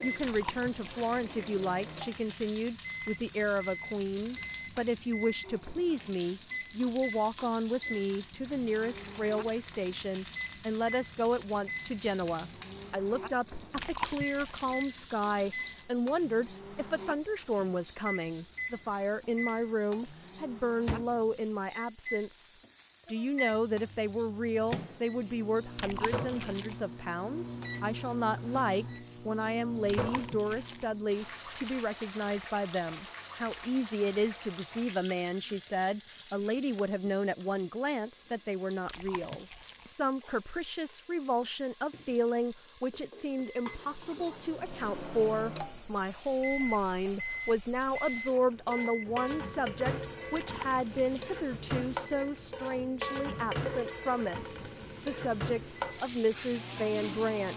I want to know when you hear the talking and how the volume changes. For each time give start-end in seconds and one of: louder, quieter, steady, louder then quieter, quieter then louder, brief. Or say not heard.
0.0-57.5 steady.